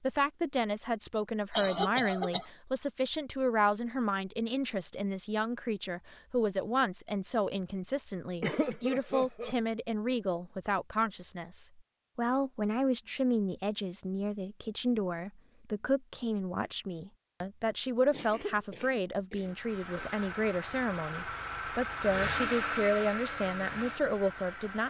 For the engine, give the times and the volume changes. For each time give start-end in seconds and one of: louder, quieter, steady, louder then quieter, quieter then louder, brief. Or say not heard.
19.4-24.8 louder then quieter.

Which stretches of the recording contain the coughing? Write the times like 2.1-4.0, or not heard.
1.5-2.5, 8.4-9.6, 18.1-20.1.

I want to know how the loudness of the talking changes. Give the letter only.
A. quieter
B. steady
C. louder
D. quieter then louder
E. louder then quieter
B.